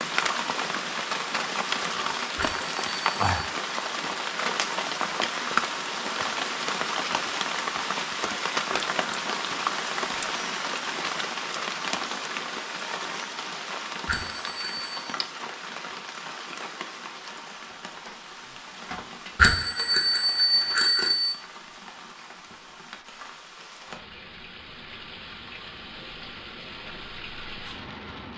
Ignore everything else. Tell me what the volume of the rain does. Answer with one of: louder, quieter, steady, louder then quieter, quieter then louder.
quieter.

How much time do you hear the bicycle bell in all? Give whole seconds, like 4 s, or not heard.
4 s.